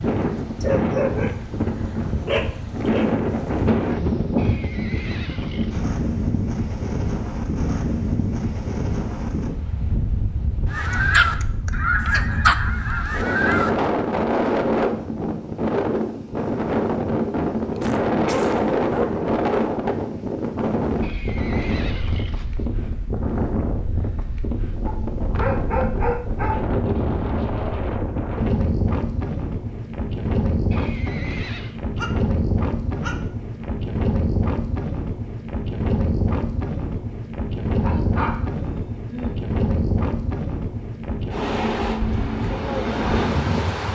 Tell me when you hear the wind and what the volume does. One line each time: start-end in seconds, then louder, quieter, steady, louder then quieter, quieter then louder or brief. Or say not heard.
0.0-43.9 steady.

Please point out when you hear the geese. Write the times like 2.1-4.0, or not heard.
10.7-13.7.